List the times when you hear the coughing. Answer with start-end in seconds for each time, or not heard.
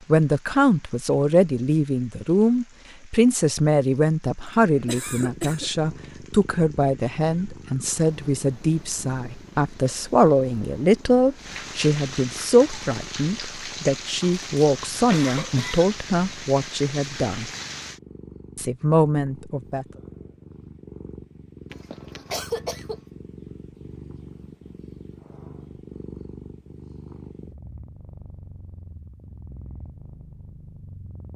4.8-5.7, 14.2-15.9, 21.7-23.0.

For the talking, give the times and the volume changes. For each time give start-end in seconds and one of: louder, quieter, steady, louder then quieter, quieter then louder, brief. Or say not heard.
0.1-17.5 steady
18.6-19.9 brief.